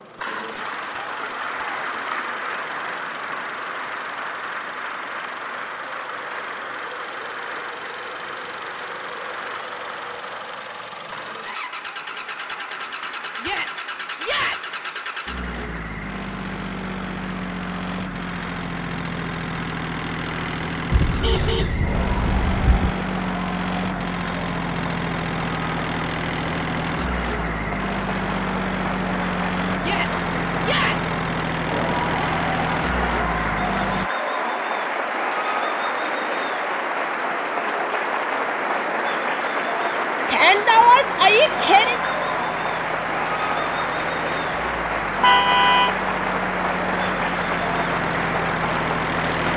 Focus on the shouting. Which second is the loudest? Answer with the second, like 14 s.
41 s.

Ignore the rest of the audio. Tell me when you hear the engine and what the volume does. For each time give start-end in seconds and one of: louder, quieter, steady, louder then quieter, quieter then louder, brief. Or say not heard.
0.0-34.1 louder
40.8-49.5 louder.